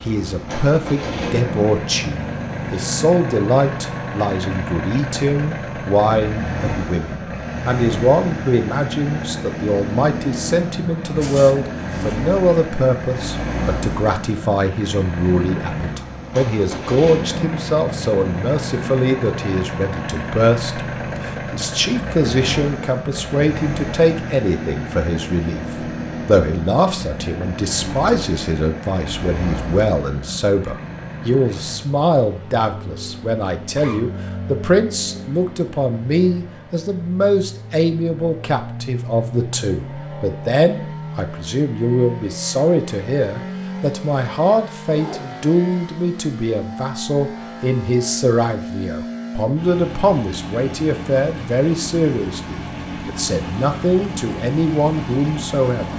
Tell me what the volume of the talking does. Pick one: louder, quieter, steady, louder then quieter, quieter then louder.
steady.